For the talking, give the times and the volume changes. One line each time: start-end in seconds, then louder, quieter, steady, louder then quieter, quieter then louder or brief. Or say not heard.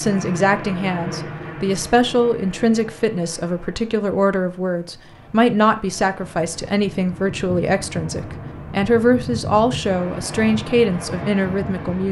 0.0-12.0 steady.